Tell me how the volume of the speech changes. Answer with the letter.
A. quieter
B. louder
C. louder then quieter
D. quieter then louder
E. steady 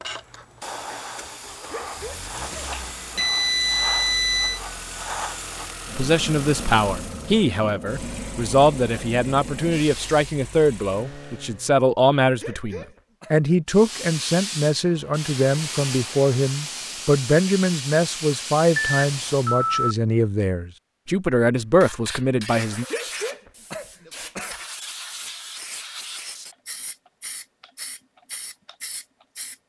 E.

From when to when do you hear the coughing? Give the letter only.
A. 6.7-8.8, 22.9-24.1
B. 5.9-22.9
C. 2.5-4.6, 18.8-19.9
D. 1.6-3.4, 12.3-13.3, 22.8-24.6
D.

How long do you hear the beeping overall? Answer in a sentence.
The beeping can be heard for 3 seconds in total.